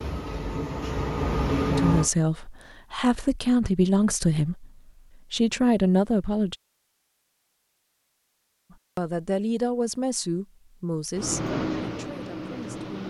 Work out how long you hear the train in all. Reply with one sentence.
You can hear the train for 4 seconds altogether.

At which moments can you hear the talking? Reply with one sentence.
You can hear the talking from 1.7 to 4.7 s, from 5.3 to 6.5 s and from 8.7 to 13.0 s.